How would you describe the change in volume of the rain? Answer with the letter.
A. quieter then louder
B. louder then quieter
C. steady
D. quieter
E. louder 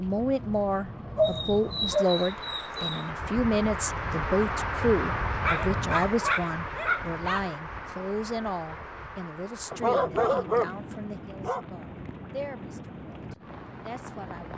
B.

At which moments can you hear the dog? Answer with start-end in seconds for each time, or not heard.
1.1-3.0, 5.4-7.4, 9.7-11.7.